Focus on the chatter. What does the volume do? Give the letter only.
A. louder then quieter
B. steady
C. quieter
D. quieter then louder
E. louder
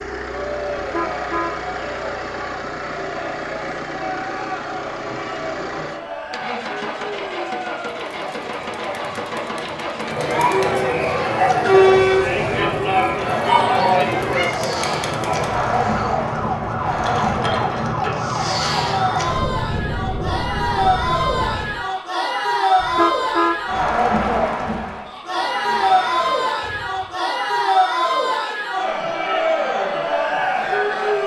E.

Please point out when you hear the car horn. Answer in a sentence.
The car horn can be heard from 0.8 to 1.6 s, from 12.4 to 13.2 s and from 22.8 to 23.6 s.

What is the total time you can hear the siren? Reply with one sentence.
You can hear the siren for 11 seconds altogether.